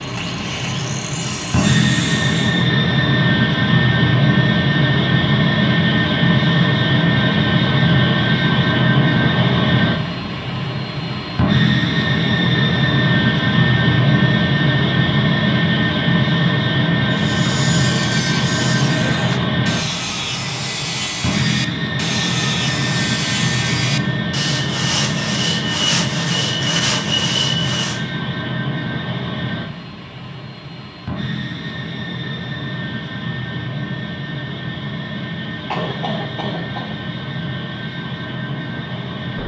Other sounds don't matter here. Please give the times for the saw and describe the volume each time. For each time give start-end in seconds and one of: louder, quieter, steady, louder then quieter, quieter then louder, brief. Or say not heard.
0.0-2.6 brief
17.1-28.1 louder.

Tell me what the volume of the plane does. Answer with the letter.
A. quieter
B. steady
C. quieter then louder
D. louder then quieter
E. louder
A.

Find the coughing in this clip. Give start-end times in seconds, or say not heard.
35.7-36.9.